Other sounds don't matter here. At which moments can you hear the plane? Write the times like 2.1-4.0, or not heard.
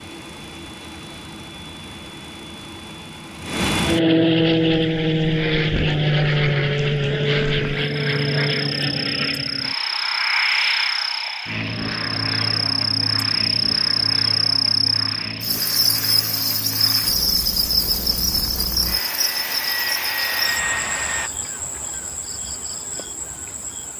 0.0-21.3.